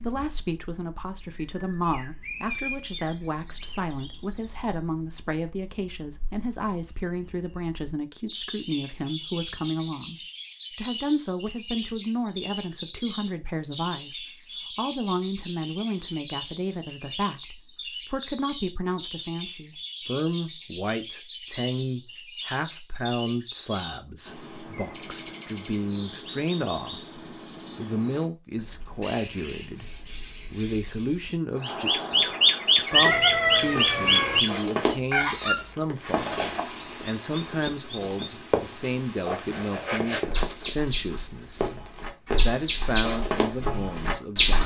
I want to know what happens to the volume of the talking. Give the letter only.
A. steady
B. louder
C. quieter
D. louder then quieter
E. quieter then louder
A.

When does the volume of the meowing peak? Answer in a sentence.
The loudest moment of the meowing is at 33 seconds.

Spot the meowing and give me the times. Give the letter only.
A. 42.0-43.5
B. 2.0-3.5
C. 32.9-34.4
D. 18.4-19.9
C.